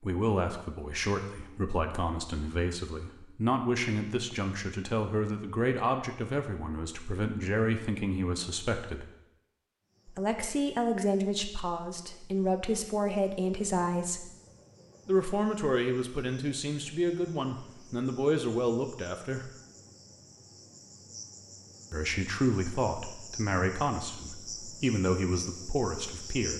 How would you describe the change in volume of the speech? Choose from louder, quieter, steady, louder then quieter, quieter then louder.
steady.